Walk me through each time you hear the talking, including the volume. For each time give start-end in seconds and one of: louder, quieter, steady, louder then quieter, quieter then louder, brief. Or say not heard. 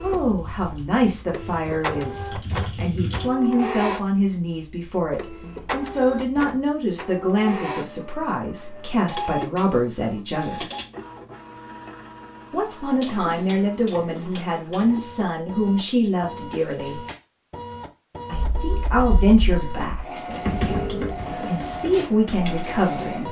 0.0-10.7 steady
12.5-17.0 steady
18.2-23.2 quieter then louder.